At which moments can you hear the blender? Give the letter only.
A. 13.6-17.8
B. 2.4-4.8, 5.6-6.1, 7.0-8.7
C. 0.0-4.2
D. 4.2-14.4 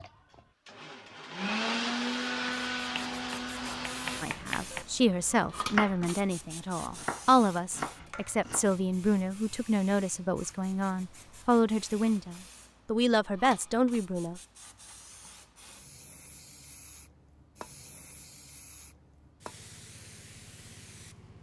C.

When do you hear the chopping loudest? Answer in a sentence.
The loudest moment of the chopping is at 6 seconds.